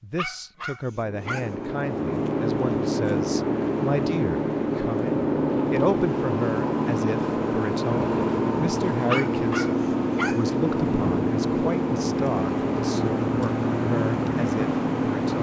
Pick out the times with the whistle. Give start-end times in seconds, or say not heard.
not heard.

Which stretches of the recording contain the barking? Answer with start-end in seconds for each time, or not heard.
0.1-1.5, 9.1-10.4.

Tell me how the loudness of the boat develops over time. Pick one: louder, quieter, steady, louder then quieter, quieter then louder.
steady.